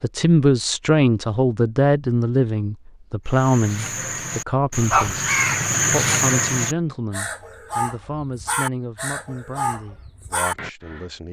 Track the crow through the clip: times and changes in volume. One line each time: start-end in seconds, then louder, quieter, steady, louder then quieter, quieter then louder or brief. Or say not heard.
3.3-11.1 louder then quieter.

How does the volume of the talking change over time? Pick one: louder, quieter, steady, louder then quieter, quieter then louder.
quieter.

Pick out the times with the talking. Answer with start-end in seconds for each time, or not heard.
0.0-11.2.